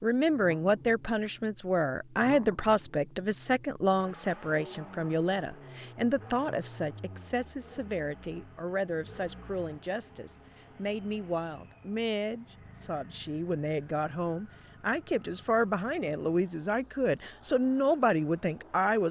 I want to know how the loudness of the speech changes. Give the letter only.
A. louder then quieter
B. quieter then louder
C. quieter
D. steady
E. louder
B.